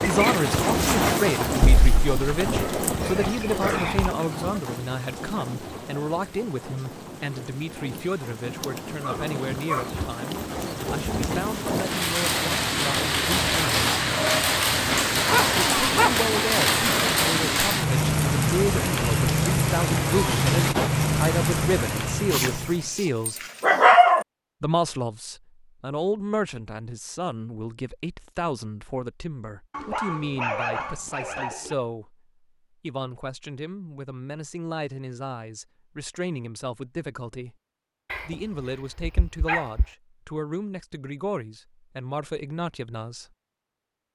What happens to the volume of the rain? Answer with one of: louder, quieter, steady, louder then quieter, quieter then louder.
quieter then louder.